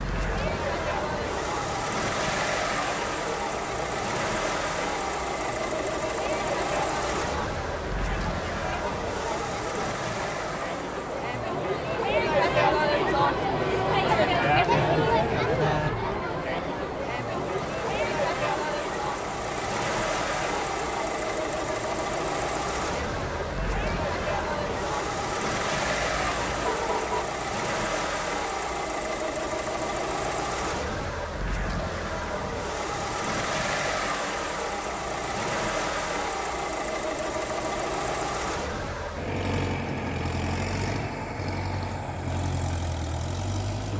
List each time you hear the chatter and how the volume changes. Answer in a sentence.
The chatter can be heard from 0.0 to 27.2 s, getting louder then quieter.